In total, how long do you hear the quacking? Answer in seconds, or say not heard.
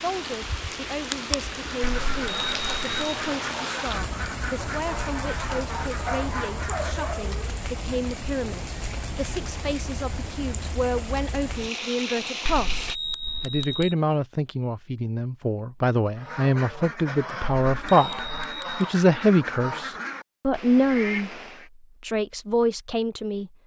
11 s.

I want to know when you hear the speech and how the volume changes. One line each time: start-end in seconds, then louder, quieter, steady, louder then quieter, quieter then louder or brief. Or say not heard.
0.0-21.4 louder
22.0-23.5 brief.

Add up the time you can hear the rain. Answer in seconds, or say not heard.
13 s.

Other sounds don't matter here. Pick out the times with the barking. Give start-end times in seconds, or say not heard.
6.0-7.6.